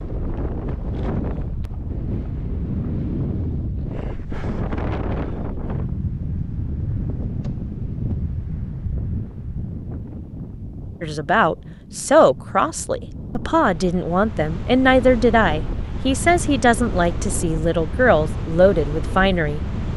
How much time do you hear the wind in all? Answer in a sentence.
The wind can be heard for 20 seconds in total.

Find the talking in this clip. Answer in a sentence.
The talking can be heard from 11.0 to 19.9 s.